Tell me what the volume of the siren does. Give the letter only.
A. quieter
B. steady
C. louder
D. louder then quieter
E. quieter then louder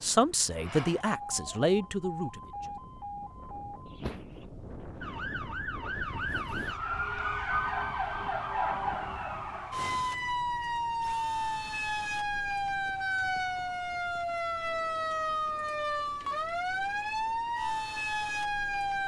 C.